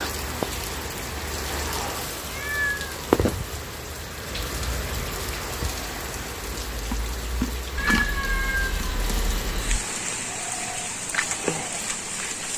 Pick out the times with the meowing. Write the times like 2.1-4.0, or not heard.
1.8-2.9, 7.8-9.8.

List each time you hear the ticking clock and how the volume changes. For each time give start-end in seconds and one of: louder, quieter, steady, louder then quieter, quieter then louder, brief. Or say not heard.
not heard.